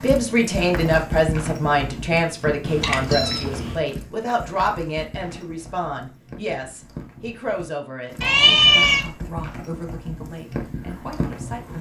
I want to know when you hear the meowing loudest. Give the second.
9 s.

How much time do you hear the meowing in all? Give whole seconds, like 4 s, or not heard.
2 s.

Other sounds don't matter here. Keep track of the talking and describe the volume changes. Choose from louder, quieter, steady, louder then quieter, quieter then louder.
quieter.